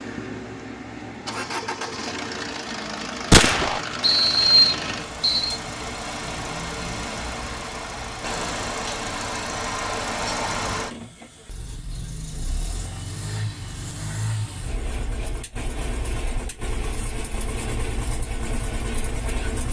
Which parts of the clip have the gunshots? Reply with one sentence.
The gunshots can be heard from 3.3 to 3.8 s.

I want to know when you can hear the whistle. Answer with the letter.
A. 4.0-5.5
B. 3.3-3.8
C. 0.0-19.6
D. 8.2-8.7
A.